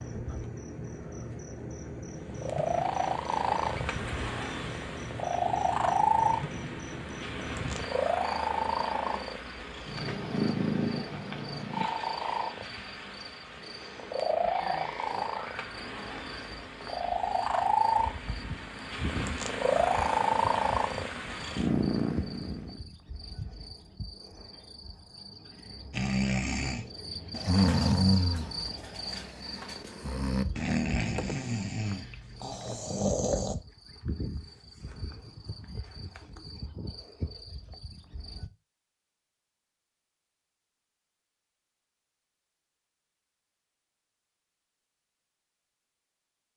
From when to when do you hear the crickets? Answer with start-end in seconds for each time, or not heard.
0.0-38.5.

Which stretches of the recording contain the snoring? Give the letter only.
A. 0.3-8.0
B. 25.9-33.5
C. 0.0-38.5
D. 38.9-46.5
B.